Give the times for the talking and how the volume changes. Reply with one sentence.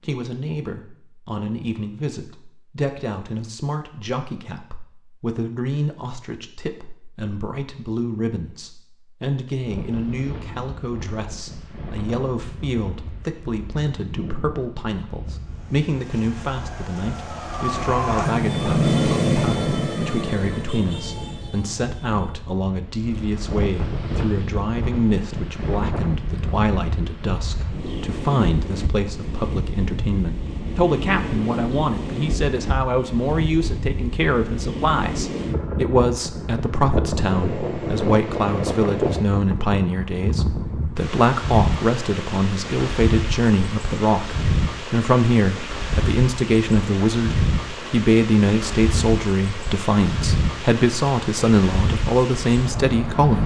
You can hear the talking from 0.0 to 53.4 s, getting louder.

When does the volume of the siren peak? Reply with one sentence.
The loudest moment of the siren is at 19 seconds.